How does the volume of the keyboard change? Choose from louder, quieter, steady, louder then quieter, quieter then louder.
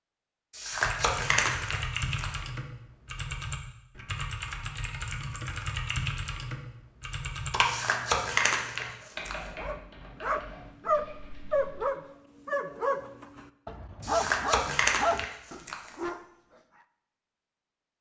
quieter.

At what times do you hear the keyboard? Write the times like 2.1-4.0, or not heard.
0.7-11.8.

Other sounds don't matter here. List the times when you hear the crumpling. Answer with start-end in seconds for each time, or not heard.
0.5-2.4, 7.6-9.3, 14.0-15.9.